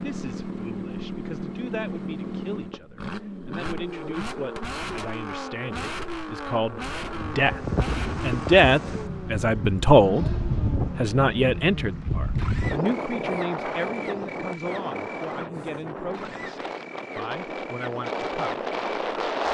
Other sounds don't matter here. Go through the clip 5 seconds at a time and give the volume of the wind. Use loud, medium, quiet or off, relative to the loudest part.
off, loud, loud, loud.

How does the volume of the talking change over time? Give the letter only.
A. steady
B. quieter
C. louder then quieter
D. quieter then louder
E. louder
C.